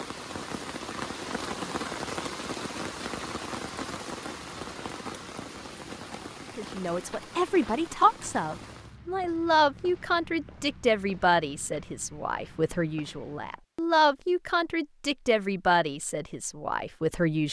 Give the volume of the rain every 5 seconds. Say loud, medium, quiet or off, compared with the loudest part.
loud, medium, off, off.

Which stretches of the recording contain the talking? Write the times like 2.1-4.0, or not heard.
6.5-17.4.